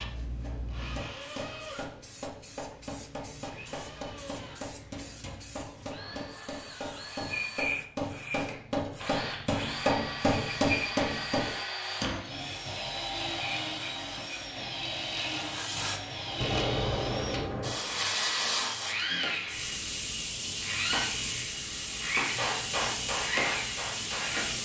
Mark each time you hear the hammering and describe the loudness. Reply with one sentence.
You can hear the hammering from 0.4 to 12.2 s, getting louder; and briefly from 22.2 to 24.4 s.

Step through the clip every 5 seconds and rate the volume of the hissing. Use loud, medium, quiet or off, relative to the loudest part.
quiet, medium, medium, loud, loud.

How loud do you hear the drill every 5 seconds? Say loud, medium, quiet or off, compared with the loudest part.
medium, medium, loud, loud, loud.